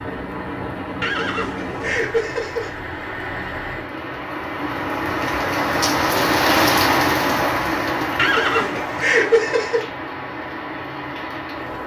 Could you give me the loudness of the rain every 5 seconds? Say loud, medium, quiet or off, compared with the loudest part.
medium, loud, medium.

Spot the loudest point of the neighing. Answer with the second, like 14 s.
9 s.